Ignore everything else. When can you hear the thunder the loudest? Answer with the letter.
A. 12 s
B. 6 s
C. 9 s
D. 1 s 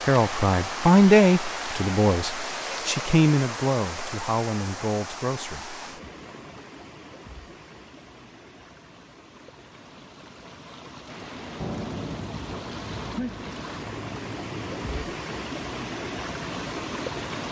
A.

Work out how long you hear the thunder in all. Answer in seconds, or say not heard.
4 s.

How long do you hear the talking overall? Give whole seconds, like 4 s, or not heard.
6 s.